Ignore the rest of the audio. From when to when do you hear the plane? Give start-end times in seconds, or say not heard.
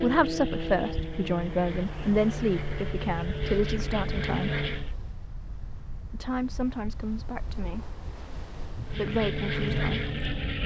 0.0-5.0, 8.8-10.6.